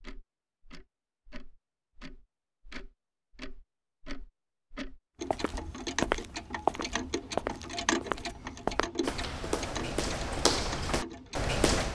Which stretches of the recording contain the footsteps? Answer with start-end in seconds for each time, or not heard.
5.3-11.8.